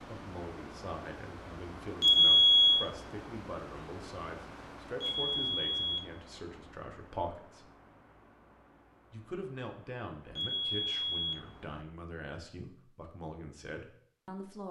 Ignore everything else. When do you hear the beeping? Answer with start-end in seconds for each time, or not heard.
2.0-2.9, 5.0-6.0, 10.3-11.3.